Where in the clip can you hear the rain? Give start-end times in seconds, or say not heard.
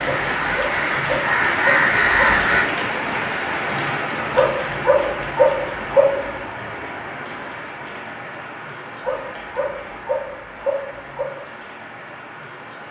0.0-12.8.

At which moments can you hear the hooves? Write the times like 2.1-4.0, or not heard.
not heard.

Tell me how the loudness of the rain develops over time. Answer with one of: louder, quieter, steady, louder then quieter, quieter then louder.
quieter.